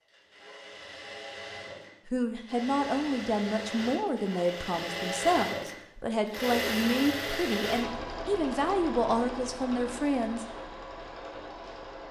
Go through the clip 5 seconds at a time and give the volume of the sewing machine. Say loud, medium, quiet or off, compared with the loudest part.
medium, loud, medium.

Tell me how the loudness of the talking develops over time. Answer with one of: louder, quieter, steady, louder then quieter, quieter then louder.
steady.